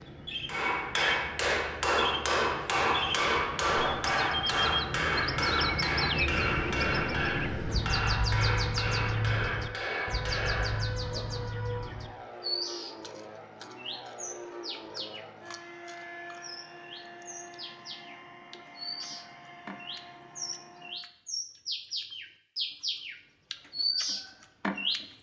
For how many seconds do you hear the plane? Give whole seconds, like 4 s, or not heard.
21 s.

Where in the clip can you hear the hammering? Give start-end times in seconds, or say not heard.
0.5-11.2.